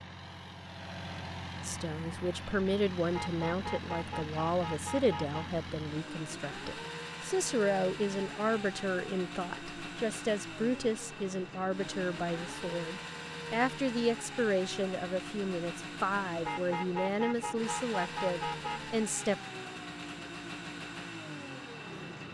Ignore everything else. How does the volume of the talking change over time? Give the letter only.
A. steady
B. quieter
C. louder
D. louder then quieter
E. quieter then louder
A.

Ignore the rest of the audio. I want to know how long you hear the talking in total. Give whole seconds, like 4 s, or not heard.
18 s.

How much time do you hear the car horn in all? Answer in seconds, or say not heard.
5 s.